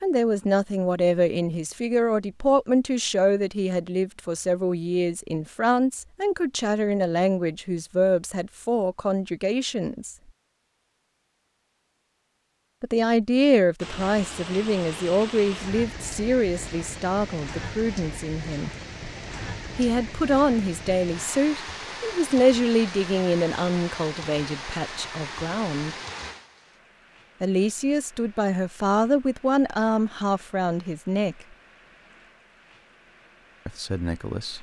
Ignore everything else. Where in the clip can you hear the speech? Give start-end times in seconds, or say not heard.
0.0-10.2, 12.8-18.7, 19.8-25.9, 27.4-31.4, 33.6-34.5.